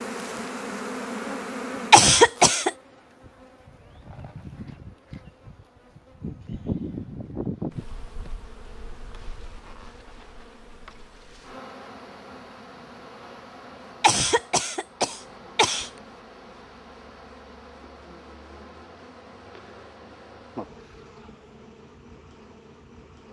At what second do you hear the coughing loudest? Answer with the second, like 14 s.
2 s.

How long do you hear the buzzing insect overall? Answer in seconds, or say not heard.
23 s.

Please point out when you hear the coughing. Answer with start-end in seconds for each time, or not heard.
1.9-2.7, 14.0-15.9.